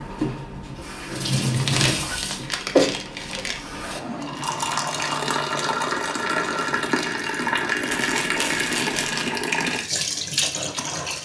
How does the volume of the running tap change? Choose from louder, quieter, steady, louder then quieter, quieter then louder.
steady.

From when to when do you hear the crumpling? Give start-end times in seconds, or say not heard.
1.5-3.6, 7.9-9.3.